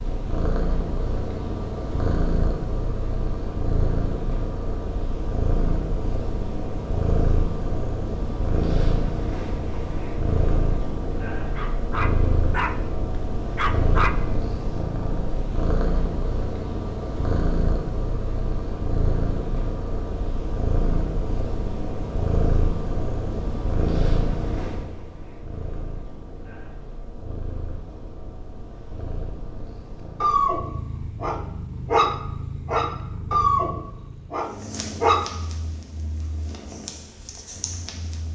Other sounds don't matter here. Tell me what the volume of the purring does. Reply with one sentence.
The loudness of the purring goes down.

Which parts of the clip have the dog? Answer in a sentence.
The dog can be heard from 11.5 to 12.8 s, from 13.6 to 14.2 s and from 30.2 to 35.4 s.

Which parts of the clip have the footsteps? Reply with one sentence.
The footsteps can't be heard in this clip.